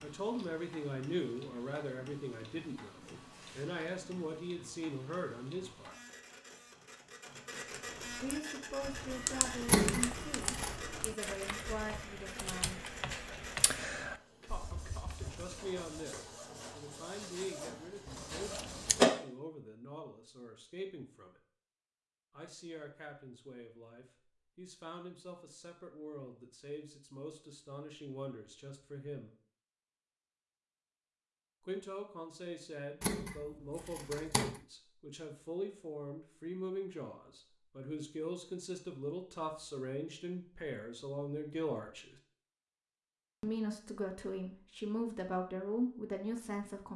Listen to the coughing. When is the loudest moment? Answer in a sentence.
The volume of the coughing peaks at 15 seconds.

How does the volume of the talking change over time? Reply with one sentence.
The volume of the talking goes down, then up.